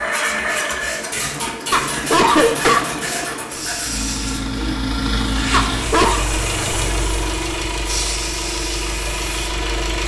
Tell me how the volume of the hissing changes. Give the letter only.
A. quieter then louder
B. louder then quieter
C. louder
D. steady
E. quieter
D.